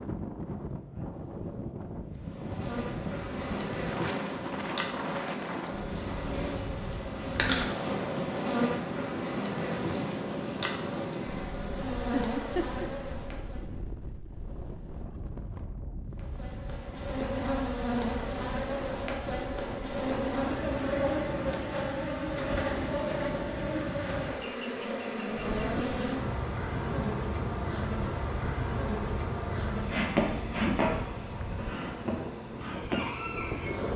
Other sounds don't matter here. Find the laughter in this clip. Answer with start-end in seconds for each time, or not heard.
12.1-12.8.